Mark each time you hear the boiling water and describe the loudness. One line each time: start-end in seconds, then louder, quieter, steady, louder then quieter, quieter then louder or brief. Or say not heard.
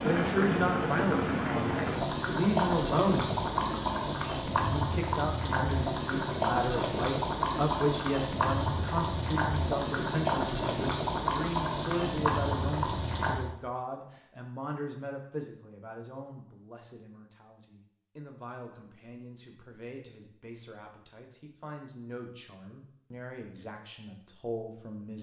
0.0-13.4 steady.